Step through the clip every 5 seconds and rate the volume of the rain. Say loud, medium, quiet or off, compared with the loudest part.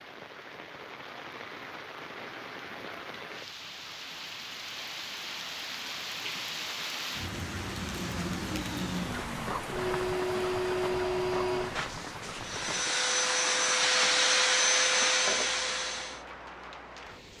medium, loud, loud, medium.